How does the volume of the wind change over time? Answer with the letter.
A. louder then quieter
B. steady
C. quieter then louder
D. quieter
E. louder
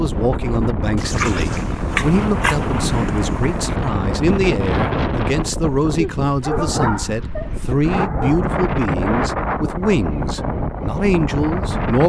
B.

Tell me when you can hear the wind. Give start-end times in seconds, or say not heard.
0.0-12.0.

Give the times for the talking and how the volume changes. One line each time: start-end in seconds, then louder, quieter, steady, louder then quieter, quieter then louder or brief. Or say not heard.
0.0-12.0 steady.